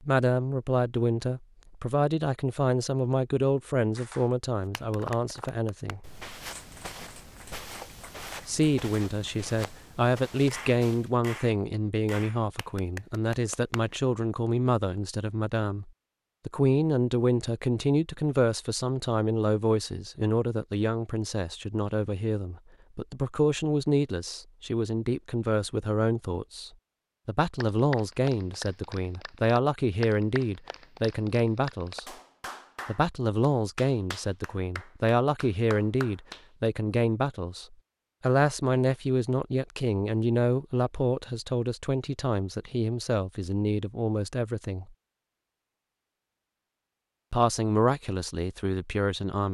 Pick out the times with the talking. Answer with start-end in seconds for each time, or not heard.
0.0-6.0, 8.4-32.0, 32.9-44.9, 47.3-49.4.